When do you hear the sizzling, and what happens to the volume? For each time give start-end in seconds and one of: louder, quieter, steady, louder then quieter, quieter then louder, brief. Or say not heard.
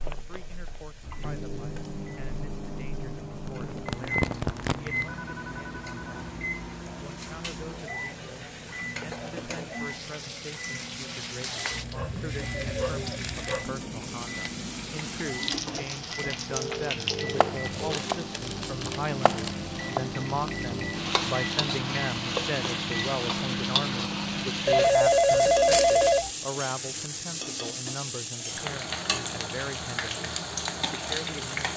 0.0-31.7 louder.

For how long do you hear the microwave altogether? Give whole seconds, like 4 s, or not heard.
25 s.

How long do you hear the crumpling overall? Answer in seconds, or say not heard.
5 s.